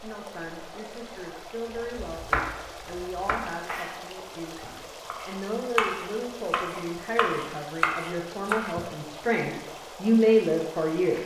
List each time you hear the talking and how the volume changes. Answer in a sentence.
The talking can be heard from 0.0 to 11.2 s, getting louder.